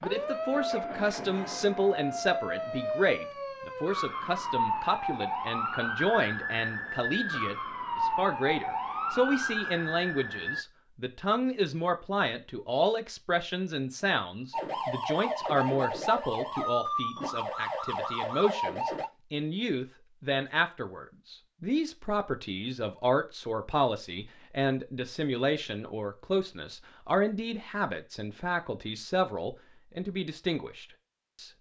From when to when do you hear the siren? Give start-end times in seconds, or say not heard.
0.0-10.7, 14.5-19.1.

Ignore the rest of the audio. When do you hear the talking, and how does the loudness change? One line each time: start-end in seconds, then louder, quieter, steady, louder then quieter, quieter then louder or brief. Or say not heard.
0.0-31.5 steady.